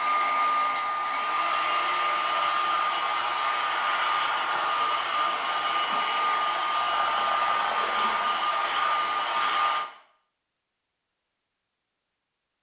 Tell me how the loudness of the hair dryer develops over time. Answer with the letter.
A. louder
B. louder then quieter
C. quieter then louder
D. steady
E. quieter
D.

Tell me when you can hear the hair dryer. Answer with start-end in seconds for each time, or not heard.
0.0-9.9.